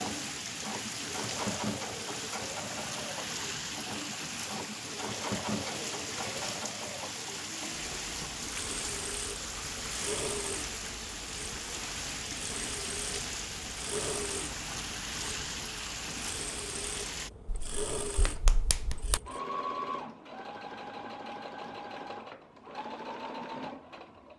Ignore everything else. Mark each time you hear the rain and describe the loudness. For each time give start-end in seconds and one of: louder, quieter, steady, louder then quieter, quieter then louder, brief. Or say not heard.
0.0-17.3 steady.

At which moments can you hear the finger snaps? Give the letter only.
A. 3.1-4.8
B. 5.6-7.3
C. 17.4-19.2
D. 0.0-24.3
C.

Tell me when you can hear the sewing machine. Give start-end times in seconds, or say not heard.
0.0-24.3.